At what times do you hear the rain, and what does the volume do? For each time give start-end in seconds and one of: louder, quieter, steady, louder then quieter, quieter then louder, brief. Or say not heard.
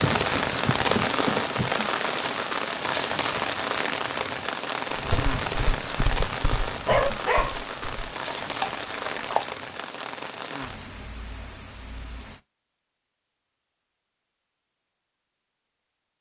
0.0-12.4 quieter.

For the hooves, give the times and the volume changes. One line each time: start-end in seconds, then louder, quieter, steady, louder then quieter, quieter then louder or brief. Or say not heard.
0.0-1.6 brief
5.0-9.4 quieter then louder.